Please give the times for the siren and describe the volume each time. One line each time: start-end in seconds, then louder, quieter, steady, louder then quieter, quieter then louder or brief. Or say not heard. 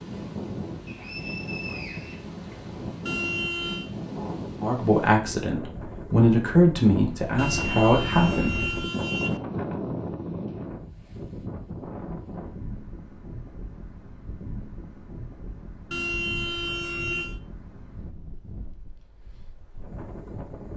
not heard.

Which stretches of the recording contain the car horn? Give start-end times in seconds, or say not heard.
3.0-3.9, 7.3-9.4, 15.9-17.4.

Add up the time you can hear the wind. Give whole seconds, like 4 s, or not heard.
21 s.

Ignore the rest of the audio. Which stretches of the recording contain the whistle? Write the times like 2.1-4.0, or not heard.
0.8-2.3.